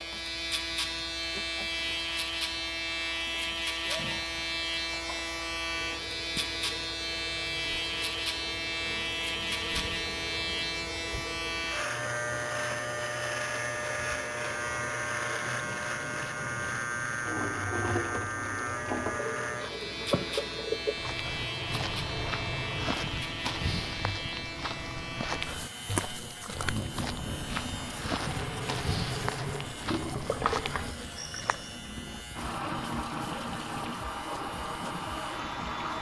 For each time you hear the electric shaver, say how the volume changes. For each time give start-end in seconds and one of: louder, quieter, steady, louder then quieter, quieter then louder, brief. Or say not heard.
0.0-35.9 quieter.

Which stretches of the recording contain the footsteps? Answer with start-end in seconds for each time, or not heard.
20.9-31.9.